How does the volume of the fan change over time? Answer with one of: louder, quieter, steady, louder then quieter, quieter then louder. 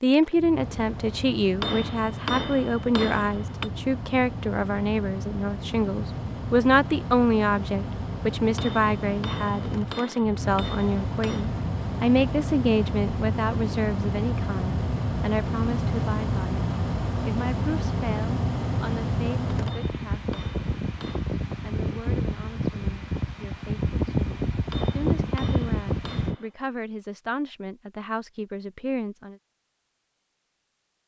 louder.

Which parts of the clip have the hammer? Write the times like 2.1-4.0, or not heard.
1.6-3.7, 8.6-11.5, 19.6-21.2, 24.7-26.5.